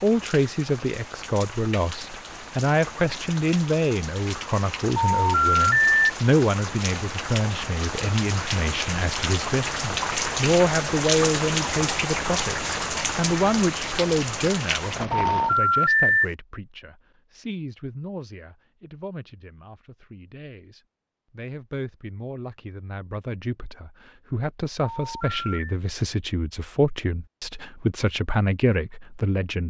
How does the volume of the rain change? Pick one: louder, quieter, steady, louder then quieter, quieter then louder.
louder.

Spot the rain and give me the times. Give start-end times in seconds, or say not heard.
0.0-15.6.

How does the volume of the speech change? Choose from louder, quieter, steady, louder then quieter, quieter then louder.
quieter then louder.